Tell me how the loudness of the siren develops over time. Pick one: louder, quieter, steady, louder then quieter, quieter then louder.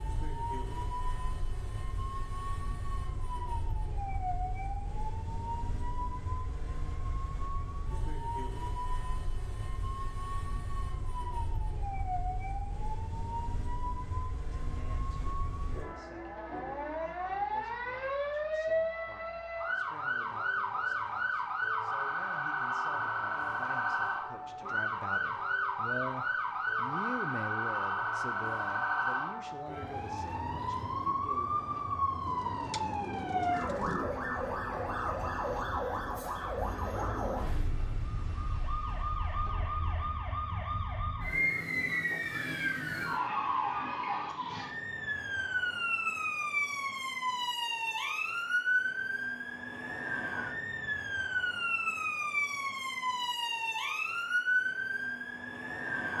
louder.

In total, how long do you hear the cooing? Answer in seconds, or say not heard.
2 s.